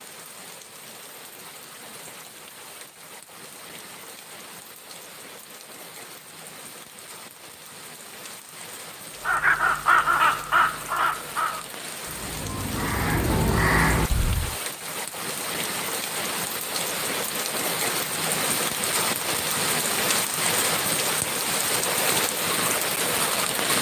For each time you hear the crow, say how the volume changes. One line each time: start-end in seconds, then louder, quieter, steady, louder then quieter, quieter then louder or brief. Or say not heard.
9.2-14.6 quieter then louder.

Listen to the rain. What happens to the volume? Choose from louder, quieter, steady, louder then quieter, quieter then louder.
louder.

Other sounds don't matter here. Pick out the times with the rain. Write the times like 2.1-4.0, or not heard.
0.0-23.7.